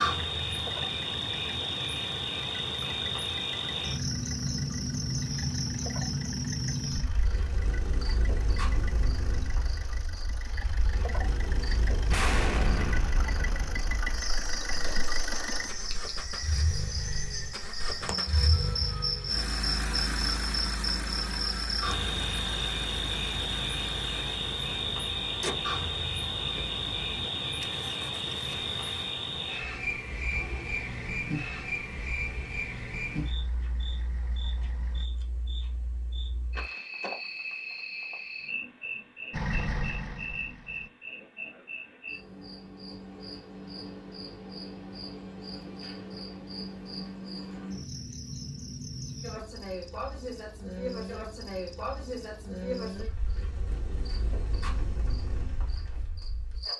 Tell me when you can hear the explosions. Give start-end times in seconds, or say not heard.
12.1-14.7.